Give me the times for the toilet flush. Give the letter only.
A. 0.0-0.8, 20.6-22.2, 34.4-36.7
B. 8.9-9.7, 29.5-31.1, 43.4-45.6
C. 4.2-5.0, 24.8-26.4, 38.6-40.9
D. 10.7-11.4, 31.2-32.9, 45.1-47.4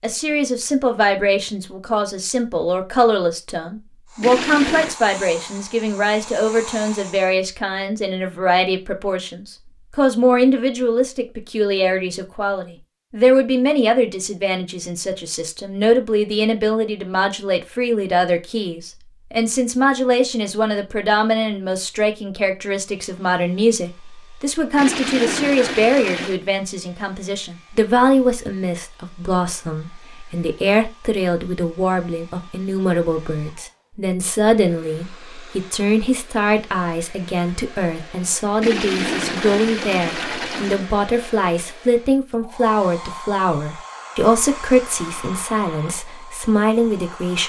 C.